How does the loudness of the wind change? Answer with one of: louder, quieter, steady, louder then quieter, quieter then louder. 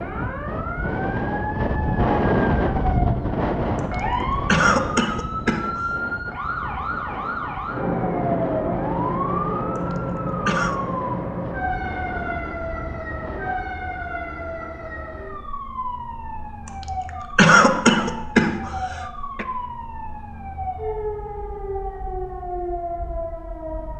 quieter.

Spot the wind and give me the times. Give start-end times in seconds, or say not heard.
0.0-13.6.